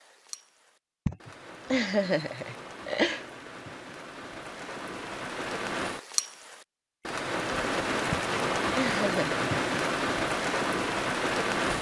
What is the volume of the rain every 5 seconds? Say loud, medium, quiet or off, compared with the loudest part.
quiet, loud, loud.